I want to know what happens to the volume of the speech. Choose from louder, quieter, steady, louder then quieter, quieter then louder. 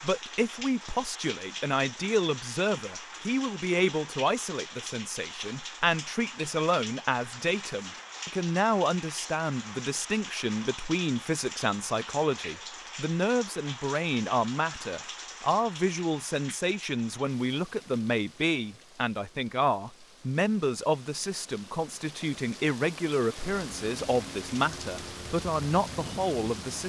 steady.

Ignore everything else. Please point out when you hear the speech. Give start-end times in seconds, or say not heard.
0.0-26.8.